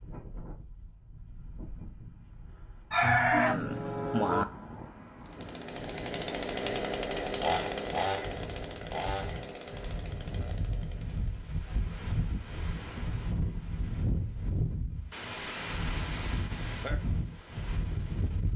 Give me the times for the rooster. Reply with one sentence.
The rooster can be heard from 2.9 to 4.5 s.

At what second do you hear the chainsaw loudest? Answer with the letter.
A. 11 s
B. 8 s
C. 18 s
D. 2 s
B.